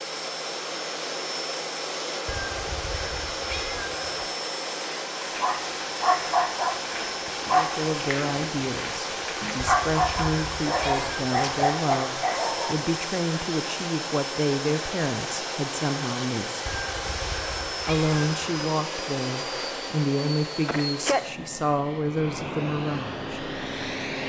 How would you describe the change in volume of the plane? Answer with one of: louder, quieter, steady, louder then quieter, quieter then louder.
steady.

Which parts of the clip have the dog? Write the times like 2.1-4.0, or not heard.
5.3-12.9.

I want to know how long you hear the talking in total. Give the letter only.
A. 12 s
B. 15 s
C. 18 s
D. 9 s
B.